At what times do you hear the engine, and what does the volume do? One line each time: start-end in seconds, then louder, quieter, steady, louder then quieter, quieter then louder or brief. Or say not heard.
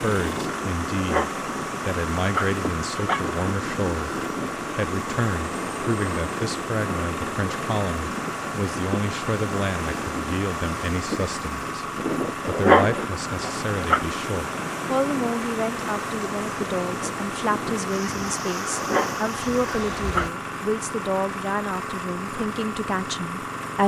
0.0-23.8 steady.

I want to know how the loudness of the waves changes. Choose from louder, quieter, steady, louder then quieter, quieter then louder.
steady.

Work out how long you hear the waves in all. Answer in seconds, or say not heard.
20 s.